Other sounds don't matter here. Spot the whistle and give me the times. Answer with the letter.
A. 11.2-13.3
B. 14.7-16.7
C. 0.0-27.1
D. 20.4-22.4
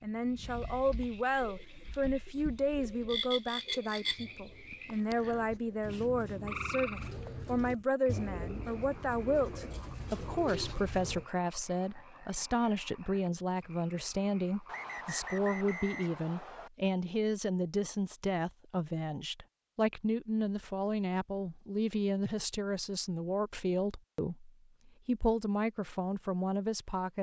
B.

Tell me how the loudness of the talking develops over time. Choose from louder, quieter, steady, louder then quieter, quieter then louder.
steady.